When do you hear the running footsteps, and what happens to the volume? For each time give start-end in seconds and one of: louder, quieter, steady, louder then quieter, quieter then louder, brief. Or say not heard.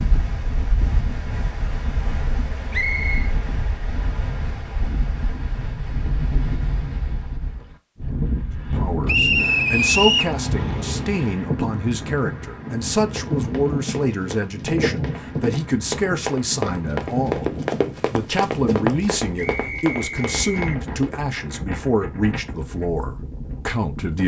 13.1-21.2 louder then quieter.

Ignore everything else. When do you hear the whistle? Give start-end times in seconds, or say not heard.
2.7-3.3, 9.1-10.3, 19.4-20.8.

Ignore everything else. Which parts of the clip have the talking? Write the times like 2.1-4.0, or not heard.
8.7-24.2.